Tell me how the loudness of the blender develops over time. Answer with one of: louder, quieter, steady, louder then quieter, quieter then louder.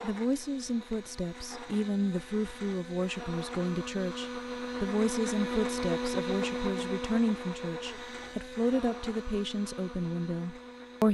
louder then quieter.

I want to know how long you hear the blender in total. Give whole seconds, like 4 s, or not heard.
11 s.